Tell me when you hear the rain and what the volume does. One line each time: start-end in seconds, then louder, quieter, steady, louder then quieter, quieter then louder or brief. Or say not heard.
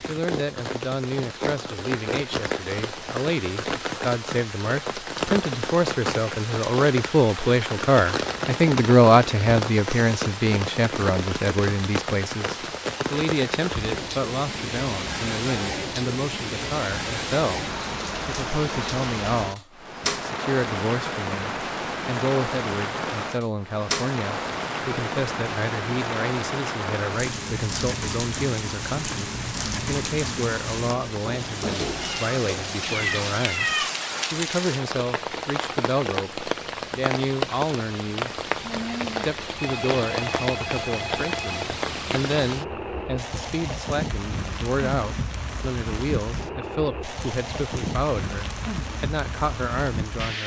0.0-50.4 steady.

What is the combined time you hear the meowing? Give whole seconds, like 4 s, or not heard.
2 s.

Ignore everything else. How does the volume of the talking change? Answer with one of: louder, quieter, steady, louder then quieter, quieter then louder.
quieter.